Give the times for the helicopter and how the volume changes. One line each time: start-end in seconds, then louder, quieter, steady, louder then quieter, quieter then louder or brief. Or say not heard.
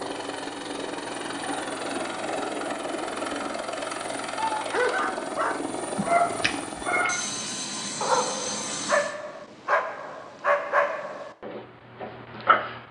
0.0-9.2 steady.